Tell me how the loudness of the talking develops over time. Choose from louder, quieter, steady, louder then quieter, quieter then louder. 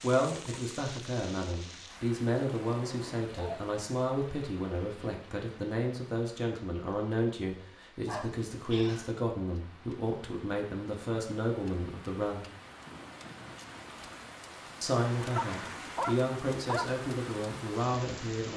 steady.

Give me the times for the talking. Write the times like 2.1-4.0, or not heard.
0.0-12.5, 14.8-18.5.